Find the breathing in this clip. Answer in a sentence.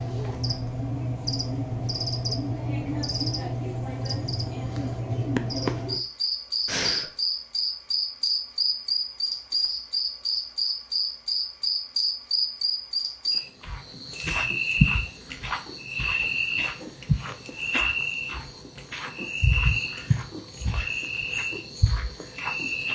The breathing can be heard from 6.7 to 7.1 s.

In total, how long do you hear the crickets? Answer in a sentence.
The crickets can be heard for 23 seconds in total.